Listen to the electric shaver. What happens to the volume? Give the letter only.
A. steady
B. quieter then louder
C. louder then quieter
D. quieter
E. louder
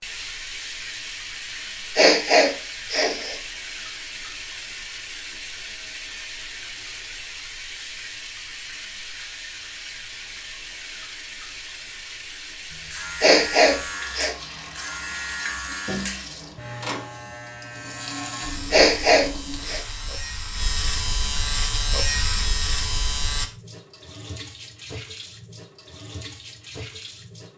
E.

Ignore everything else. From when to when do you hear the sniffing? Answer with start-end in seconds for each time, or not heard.
1.9-3.4, 13.2-14.3, 18.7-19.8.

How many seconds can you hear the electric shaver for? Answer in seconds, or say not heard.
11 s.